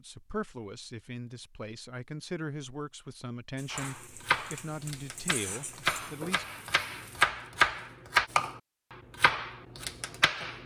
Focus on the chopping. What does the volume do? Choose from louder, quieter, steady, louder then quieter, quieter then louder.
louder then quieter.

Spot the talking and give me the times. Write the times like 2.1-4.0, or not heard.
0.0-6.5.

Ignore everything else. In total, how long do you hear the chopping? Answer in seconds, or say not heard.
7 s.